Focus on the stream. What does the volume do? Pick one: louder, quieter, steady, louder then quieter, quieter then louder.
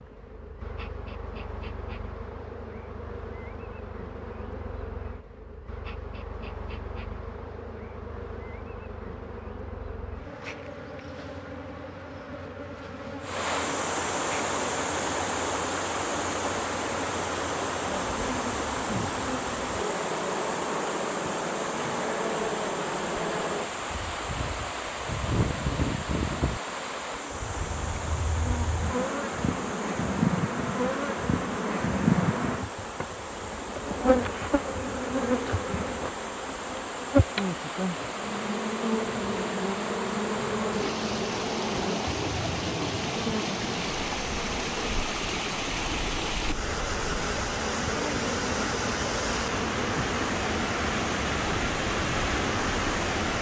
quieter then louder.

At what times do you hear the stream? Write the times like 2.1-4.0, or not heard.
13.2-53.3.